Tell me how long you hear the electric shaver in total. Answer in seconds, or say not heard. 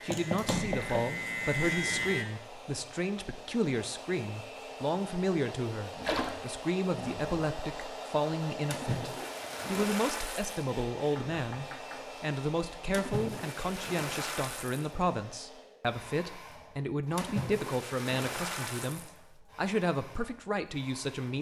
2 s.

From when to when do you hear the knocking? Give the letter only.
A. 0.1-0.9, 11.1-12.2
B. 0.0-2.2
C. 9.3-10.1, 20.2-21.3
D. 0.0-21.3
A.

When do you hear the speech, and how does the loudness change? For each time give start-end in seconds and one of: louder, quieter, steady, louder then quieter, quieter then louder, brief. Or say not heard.
0.0-21.3 steady.